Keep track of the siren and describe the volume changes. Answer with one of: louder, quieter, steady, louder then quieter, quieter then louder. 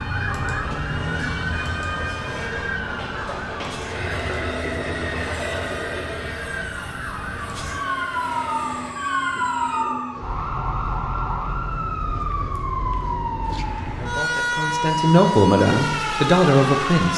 quieter then louder.